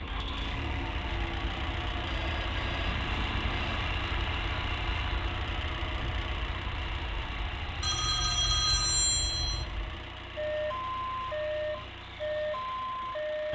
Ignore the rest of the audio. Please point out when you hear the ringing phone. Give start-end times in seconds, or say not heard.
2.1-3.8, 7.8-9.7.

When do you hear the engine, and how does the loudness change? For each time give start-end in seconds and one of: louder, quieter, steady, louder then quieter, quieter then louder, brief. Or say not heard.
0.0-13.5 quieter.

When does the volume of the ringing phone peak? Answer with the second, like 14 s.
9 s.